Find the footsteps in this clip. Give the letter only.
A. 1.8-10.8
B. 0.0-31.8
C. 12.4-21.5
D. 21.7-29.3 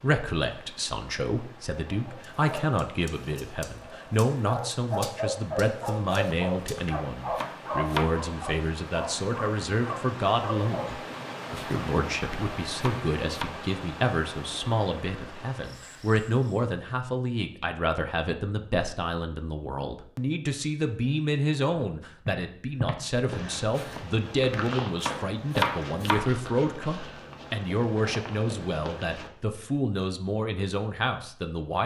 D.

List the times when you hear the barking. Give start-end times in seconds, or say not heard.
1.8-10.8.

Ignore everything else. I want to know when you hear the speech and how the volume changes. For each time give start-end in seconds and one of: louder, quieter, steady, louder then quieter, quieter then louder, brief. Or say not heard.
0.0-31.8 steady.